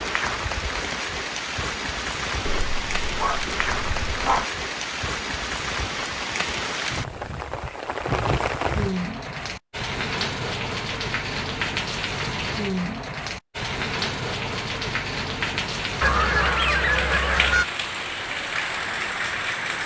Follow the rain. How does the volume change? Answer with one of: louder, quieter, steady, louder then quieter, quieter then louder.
steady.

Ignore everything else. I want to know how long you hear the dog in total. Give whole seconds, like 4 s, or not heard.
2 s.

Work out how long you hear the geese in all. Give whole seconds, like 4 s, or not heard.
2 s.